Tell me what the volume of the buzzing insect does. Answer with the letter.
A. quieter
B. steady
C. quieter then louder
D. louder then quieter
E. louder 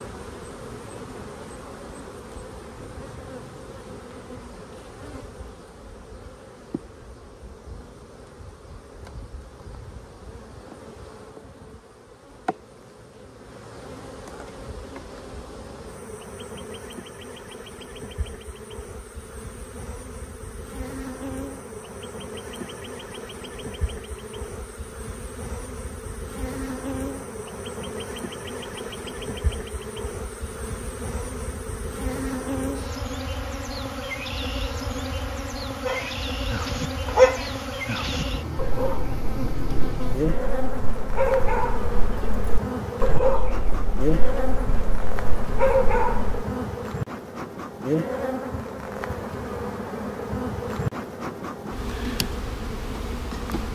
E.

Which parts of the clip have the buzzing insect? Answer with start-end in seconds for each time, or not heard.
0.0-53.6.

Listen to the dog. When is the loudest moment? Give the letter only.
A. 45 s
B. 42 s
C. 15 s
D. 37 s
D.